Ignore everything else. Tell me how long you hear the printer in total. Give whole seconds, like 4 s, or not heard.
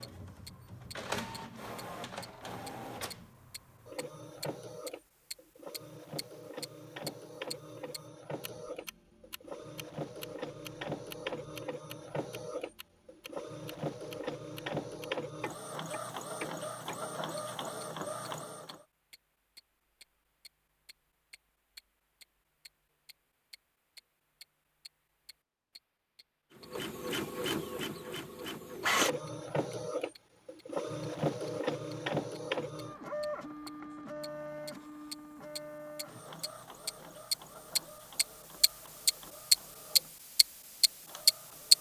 34 s.